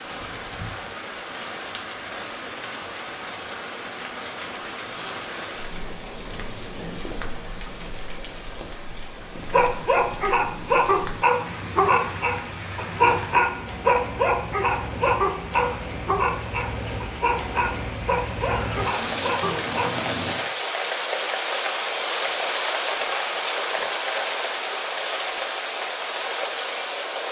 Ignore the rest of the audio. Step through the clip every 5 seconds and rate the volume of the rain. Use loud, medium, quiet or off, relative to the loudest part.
medium, medium, medium, medium, loud, loud.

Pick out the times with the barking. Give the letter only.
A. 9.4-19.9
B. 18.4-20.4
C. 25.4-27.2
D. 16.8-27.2
A.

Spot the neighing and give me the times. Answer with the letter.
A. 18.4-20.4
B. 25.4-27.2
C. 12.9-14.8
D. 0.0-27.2
A.